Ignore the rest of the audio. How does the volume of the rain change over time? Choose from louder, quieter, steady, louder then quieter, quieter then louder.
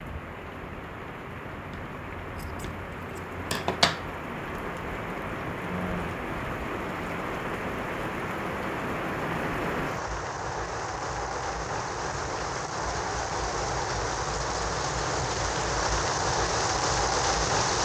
louder.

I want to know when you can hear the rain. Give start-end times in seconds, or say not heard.
0.0-17.8.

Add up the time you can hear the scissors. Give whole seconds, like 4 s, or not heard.
2 s.